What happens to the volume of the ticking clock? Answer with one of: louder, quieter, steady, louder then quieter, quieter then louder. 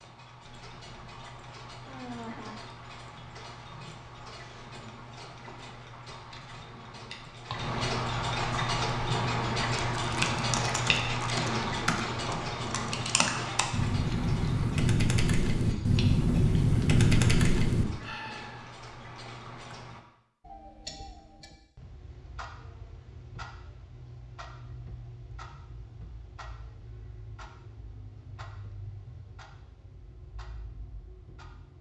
louder then quieter.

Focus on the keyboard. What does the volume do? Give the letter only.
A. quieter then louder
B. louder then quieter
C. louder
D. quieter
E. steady
C.